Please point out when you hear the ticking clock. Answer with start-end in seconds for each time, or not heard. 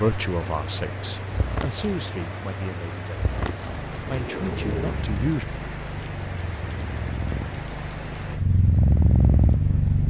not heard.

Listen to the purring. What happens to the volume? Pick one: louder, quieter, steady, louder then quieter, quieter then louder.
louder.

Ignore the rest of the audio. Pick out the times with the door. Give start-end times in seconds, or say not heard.
4.0-5.0.